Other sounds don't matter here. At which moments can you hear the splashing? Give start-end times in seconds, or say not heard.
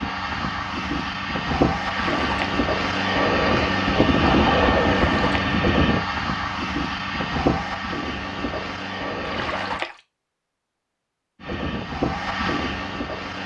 1.8-2.6, 4.8-5.5, 9.2-10.0.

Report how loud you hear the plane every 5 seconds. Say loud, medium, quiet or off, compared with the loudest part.
loud, loud, medium.